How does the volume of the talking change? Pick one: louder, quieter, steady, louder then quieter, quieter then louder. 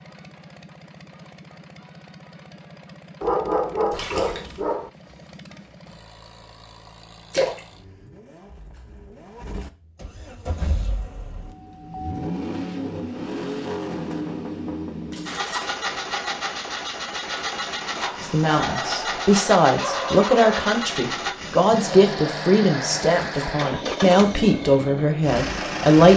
steady.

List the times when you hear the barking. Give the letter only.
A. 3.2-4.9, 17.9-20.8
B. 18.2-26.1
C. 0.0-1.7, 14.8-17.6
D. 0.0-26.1
A.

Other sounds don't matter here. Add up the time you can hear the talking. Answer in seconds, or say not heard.
8 s.